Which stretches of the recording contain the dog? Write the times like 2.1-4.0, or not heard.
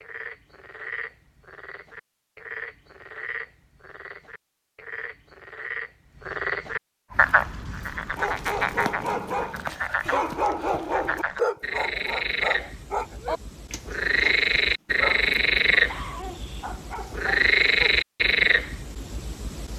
7.1-17.9.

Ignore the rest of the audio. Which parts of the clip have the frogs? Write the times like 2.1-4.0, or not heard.
0.0-19.7.